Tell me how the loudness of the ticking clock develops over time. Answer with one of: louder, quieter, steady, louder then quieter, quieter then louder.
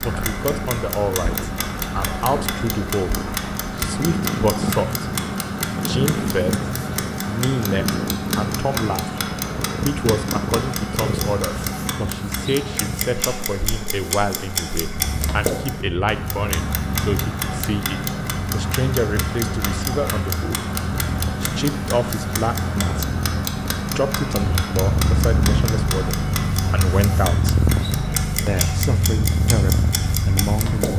steady.